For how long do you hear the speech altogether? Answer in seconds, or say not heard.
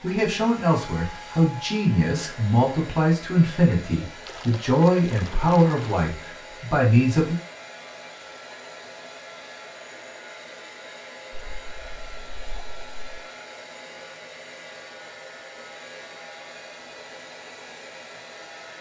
7 s.